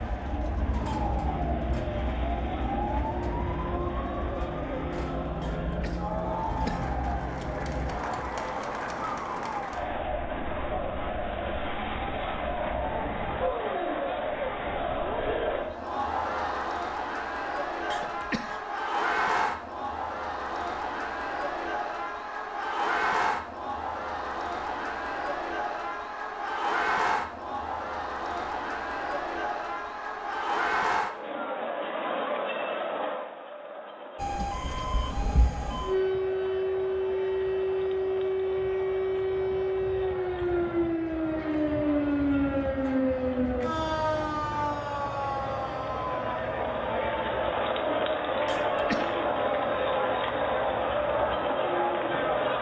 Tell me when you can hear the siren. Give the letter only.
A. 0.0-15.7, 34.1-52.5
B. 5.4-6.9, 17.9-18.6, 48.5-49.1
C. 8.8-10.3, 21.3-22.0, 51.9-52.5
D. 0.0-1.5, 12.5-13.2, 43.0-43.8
A.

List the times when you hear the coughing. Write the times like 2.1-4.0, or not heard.
5.4-6.9, 17.9-18.6, 48.5-49.1.